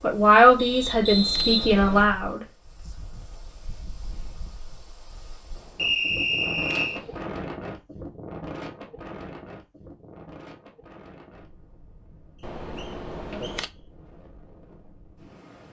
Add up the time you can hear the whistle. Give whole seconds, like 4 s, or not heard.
4 s.